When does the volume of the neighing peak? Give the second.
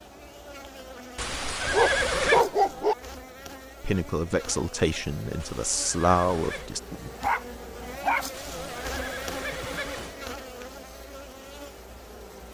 2 s.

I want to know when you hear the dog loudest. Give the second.
2 s.